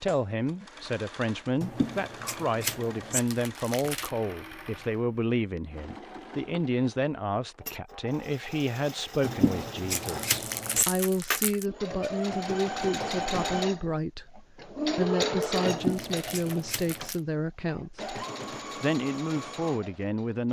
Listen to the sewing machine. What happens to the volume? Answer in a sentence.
The loudness of the sewing machine goes up, then down.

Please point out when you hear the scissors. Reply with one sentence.
The scissors can be heard from 1.6 to 3.2 s, from 9.2 to 10.8 s and from 15.7 to 17.1 s.